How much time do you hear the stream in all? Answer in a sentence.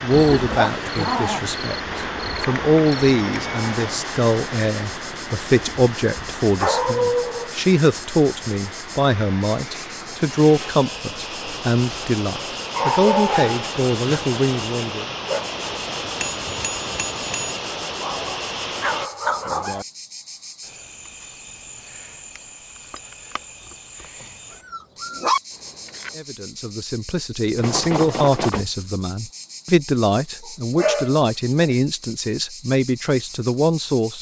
You can hear the stream for 19 seconds altogether.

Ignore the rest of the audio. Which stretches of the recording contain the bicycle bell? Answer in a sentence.
You can hear the bicycle bell from 1.9 to 3.9 s, from 16.2 to 17.6 s and from 27.6 to 28.7 s.